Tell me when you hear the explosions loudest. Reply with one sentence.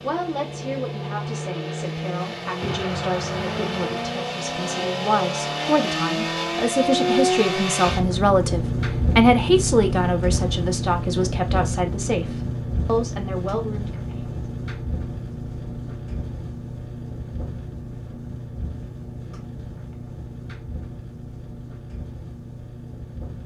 The volume of the explosions peaks at 3 seconds.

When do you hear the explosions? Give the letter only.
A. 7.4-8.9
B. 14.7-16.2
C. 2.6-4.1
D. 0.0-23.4
C.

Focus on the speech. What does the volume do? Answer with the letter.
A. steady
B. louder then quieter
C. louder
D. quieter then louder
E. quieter
B.